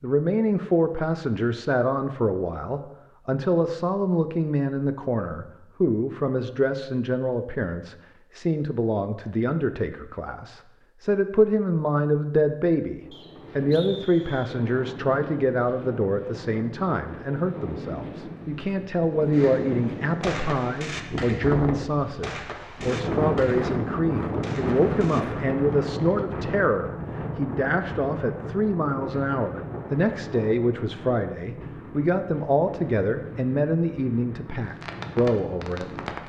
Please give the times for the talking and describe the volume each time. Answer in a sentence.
You can hear the talking from 0.0 to 35.9 s, at a steady volume.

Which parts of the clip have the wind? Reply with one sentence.
The wind can be heard from 12.9 to 36.2 s.